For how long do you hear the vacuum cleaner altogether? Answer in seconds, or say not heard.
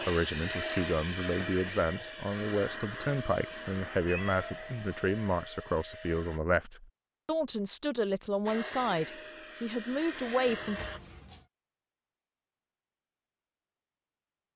9 s.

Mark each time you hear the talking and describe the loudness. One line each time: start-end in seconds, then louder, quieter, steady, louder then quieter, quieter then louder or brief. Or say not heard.
0.1-10.8 steady.